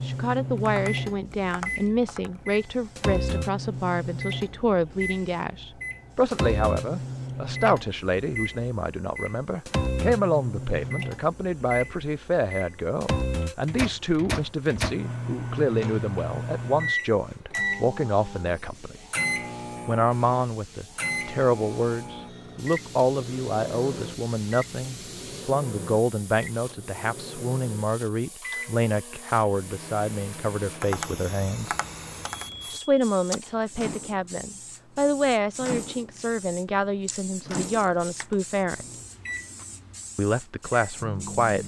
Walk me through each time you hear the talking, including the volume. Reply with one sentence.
The talking can be heard from 0.0 to 19.0 s, at a steady volume; from 19.9 to 31.8 s, at a steady volume; from 32.7 to 38.9 s, at a steady volume; and briefly from 40.1 to 41.6 s.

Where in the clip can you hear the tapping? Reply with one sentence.
The tapping can be heard from 0.6 to 2.5 s and from 30.7 to 32.6 s.